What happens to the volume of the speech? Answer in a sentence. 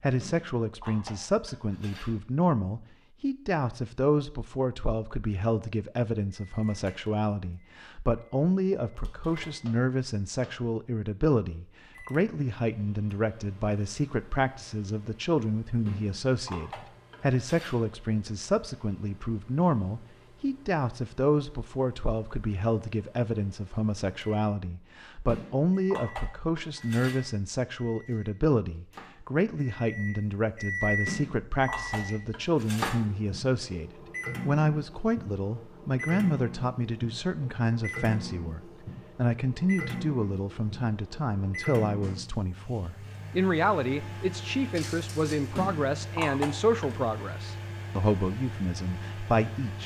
The loudness of the speech stays about the same.